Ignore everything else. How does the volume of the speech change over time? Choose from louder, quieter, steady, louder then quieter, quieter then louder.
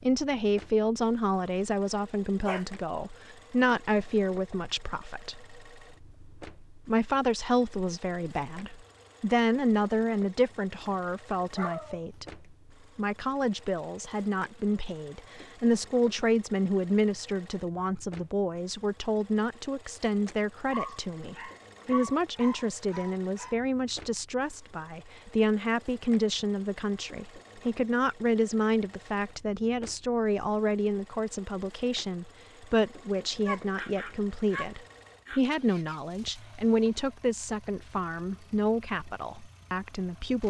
steady.